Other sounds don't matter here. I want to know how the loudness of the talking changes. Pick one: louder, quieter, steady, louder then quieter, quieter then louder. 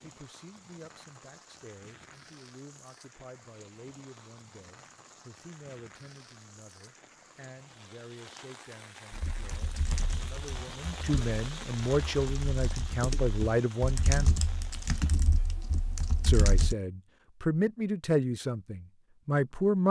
louder.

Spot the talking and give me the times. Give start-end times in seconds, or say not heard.
0.0-14.4, 16.2-19.8.